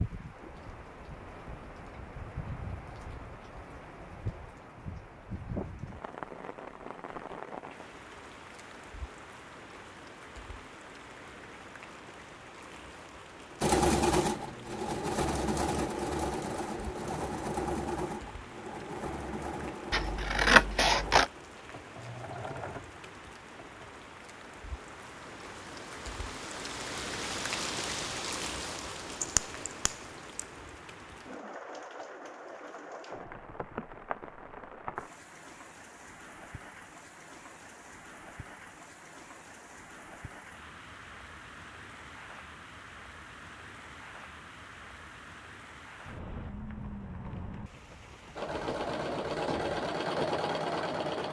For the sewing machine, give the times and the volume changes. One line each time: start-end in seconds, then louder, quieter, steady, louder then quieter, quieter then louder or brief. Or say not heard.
13.6-23.9 quieter
48.4-51.2 brief.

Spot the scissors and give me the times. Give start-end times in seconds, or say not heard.
19.9-21.3, 29.2-30.4.